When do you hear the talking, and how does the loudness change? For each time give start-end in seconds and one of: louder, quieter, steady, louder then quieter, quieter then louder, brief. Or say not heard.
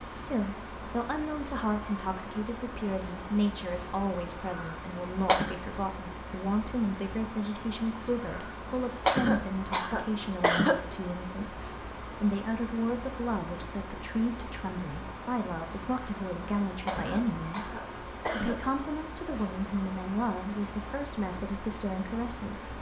0.0-22.7 steady.